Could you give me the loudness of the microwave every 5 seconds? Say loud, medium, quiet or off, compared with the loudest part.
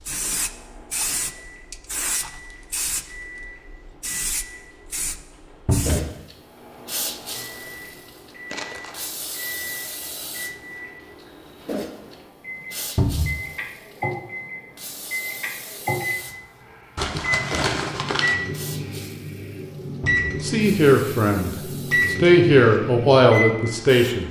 quiet, quiet, medium, loud, loud.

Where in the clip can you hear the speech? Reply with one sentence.
The speech can be heard from 20.4 to 24.2 s.